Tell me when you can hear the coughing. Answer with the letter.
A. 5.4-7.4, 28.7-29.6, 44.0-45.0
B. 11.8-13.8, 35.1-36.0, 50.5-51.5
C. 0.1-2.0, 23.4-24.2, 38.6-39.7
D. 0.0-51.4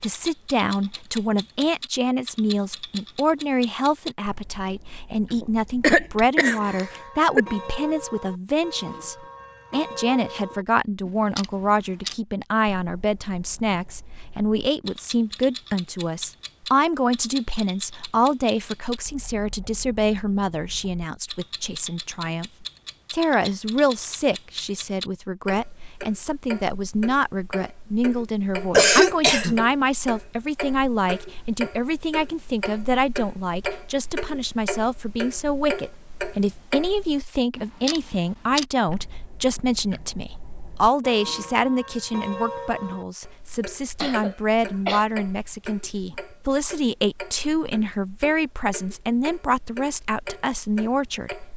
A.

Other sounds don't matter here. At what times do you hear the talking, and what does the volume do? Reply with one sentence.
The talking can be heard from 0.0 to 51.4 s, at a steady volume.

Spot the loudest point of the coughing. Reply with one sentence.
The loudest moment of the coughing is at 29 seconds.